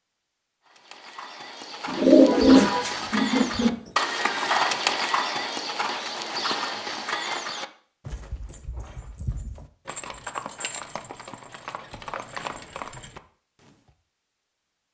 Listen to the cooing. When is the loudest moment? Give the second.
2 s.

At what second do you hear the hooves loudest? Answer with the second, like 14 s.
5 s.